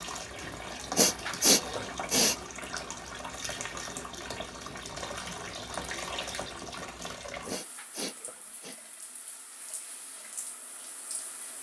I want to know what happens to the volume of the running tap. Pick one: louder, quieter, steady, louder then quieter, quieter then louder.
quieter.